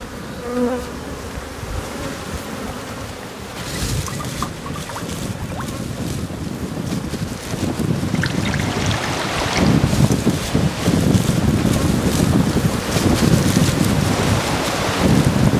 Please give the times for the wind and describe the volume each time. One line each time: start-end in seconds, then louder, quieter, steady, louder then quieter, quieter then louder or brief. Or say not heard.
0.0-15.5 louder.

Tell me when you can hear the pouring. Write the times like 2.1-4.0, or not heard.
3.5-5.8, 8.1-9.8.